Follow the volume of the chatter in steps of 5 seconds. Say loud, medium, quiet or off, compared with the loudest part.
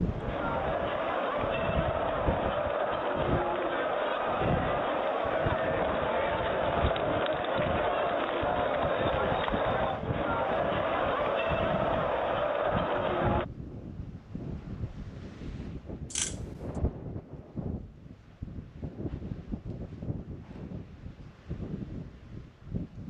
loud, loud, loud, off, off.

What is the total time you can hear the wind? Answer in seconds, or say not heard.
23 s.